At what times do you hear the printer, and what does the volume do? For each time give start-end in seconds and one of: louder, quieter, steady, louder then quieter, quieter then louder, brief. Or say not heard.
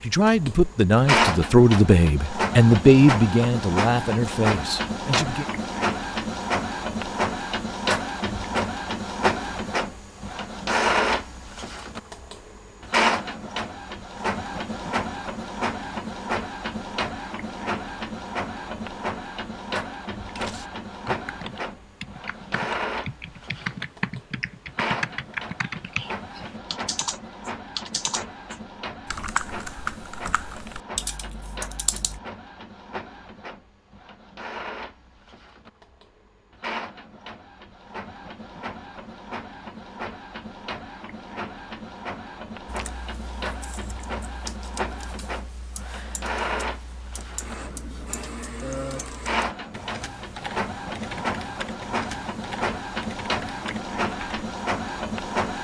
0.0-55.5 quieter then louder.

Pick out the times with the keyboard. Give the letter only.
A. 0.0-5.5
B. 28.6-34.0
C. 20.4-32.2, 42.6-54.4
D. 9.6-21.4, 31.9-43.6
C.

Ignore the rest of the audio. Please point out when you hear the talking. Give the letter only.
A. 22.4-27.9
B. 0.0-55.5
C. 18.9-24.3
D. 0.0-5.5
D.